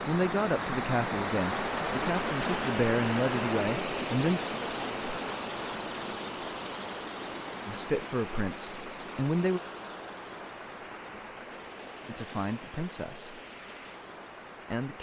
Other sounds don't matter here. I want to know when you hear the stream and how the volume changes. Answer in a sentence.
You can hear the stream from 0.0 to 14.9 s, getting quieter.